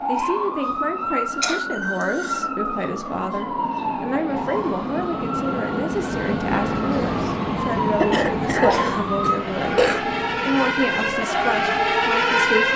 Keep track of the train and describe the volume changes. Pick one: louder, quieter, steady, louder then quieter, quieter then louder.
louder then quieter.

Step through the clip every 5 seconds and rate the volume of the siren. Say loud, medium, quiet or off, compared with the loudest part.
medium, medium, loud.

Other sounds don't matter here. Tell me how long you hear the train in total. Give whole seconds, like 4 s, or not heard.
13 s.